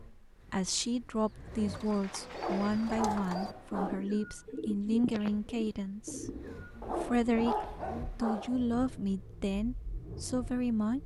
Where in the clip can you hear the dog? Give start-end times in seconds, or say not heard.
2.3-4.0, 6.8-8.6.